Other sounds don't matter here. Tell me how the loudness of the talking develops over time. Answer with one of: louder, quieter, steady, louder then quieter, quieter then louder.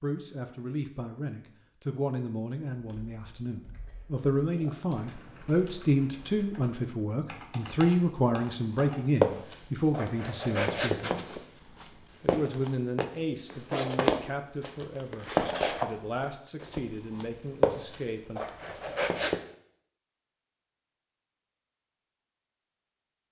louder then quieter.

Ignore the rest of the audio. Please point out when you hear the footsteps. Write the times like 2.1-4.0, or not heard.
8.5-19.4.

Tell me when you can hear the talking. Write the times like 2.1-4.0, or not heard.
0.0-11.3, 12.2-18.4.